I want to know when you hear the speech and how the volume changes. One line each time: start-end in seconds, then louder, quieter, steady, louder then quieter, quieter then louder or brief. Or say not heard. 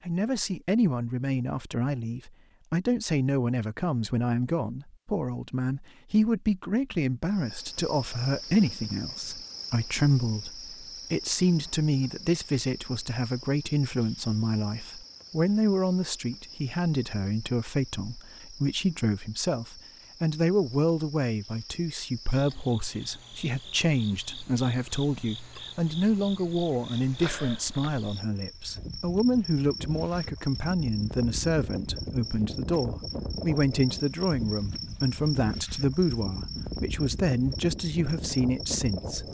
0.1-39.2 steady.